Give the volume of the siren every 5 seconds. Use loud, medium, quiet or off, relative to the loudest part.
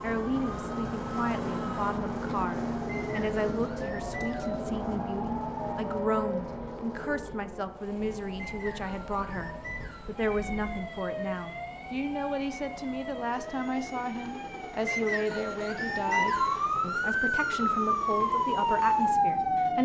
quiet, quiet, quiet, loud.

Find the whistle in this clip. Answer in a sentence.
The whistle can be heard from 2.9 to 4.7 s, from 8.3 to 10.2 s and from 14.8 to 16.6 s.